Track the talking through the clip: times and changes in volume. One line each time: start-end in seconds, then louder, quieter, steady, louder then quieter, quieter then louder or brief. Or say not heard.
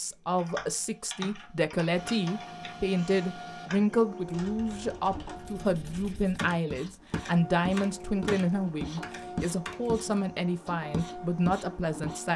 0.0-12.3 steady.